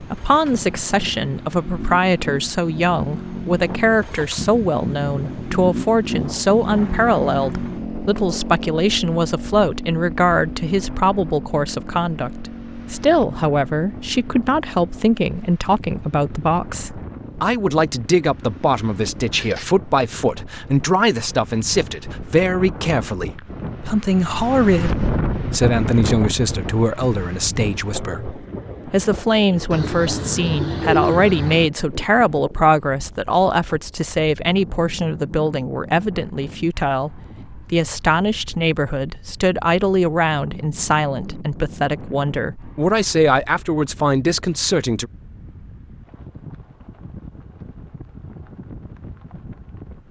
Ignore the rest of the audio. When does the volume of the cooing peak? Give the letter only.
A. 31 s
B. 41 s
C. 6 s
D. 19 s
A.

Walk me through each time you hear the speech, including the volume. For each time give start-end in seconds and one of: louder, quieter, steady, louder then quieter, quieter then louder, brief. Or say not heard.
0.0-45.1 steady.